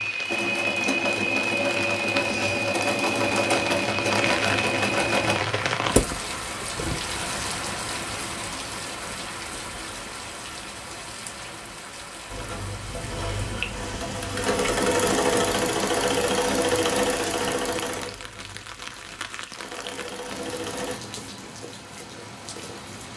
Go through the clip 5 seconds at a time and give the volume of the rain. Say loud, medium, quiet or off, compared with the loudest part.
loud, loud, medium, medium, medium.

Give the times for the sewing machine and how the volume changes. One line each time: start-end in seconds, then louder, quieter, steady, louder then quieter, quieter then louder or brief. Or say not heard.
0.0-5.4 steady
12.3-21.0 louder then quieter.